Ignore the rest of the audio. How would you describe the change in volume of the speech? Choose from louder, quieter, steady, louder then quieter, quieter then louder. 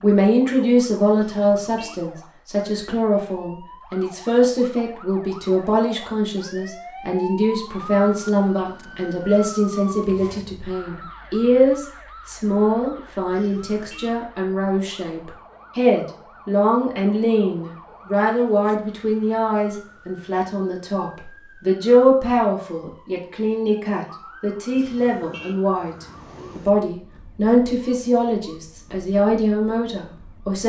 steady.